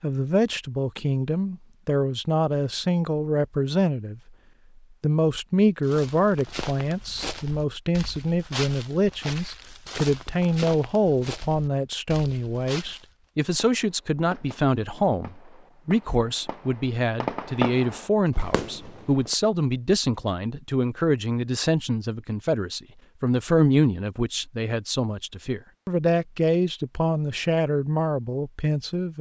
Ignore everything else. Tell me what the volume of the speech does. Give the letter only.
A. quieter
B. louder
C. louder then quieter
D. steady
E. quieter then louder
D.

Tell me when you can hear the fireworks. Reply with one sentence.
You can hear the fireworks from 13.7 to 19.4 s.